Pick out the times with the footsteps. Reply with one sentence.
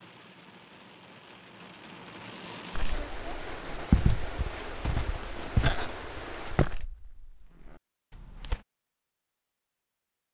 You can hear the footsteps from 2.8 to 8.6 s.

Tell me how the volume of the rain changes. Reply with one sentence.
The loudness of the rain goes up.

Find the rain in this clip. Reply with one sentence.
The rain can be heard from 0.0 to 6.8 s.